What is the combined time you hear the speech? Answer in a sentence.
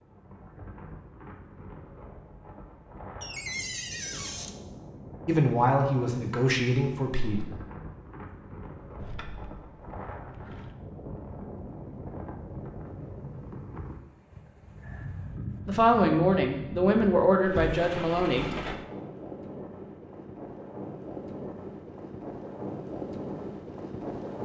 The speech can be heard for 5 seconds in total.